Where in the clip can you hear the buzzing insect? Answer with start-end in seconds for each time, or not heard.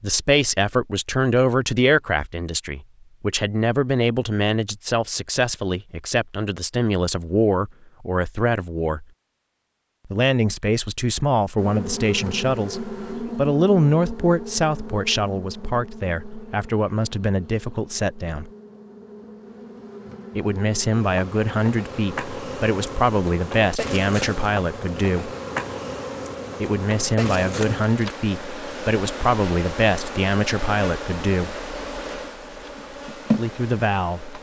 11.6-34.3.